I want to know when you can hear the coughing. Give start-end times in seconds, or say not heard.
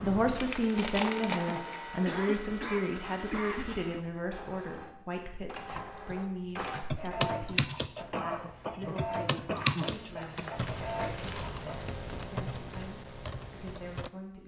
1.3-4.0, 8.1-10.7.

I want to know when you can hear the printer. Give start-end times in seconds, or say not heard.
0.0-11.9.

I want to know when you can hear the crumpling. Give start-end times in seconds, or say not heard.
0.3-1.6, 9.6-11.8.